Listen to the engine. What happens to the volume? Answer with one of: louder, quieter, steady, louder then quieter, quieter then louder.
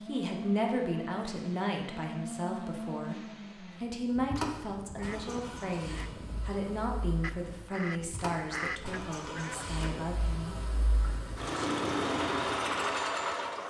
quieter then louder.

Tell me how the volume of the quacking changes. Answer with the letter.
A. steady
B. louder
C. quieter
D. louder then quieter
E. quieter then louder
D.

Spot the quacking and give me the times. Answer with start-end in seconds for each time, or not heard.
4.7-10.1.